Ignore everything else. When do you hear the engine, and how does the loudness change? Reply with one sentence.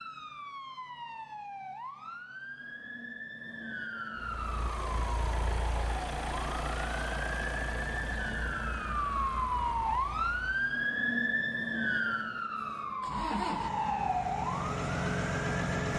The engine can be heard from 4.2 to 10.7 s, getting quieter; and briefly from 13.0 to 15.9 s.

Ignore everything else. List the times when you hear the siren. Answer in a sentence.
You can hear the siren from 0.0 to 15.7 s.